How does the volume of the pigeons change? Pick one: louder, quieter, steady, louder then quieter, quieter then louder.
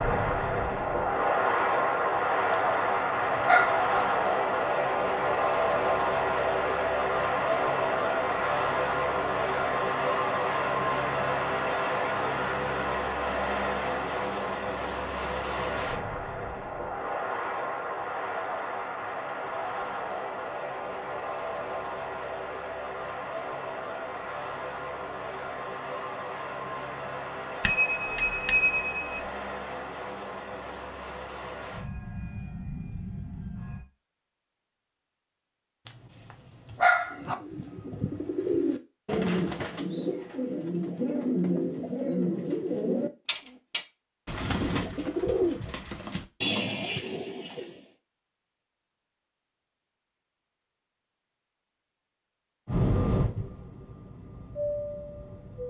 steady.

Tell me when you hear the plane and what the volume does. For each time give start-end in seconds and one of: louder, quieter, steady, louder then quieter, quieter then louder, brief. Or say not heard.
0.0-33.9 quieter
52.6-55.6 brief.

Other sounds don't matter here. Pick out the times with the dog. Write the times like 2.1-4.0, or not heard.
2.5-3.9, 35.9-37.4.